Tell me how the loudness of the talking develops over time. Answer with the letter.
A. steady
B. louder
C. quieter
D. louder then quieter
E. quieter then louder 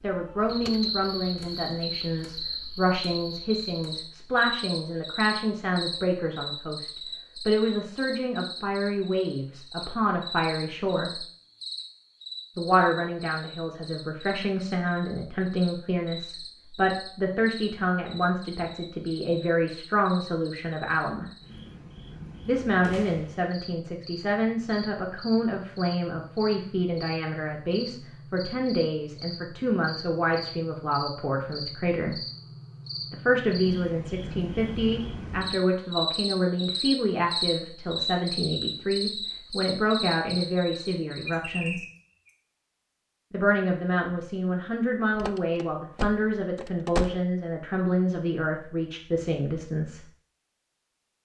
A.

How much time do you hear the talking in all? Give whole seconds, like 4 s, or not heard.
45 s.